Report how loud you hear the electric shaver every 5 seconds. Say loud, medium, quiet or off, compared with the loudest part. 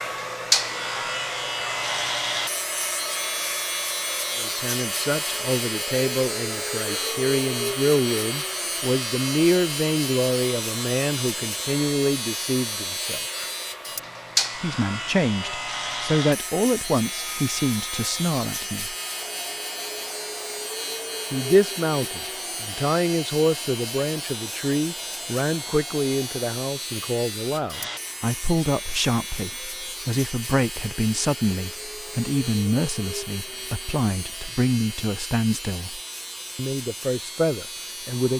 loud, loud, loud, medium, medium, medium, medium, medium.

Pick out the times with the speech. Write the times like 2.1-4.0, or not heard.
4.3-13.2, 14.6-18.9, 21.3-38.3.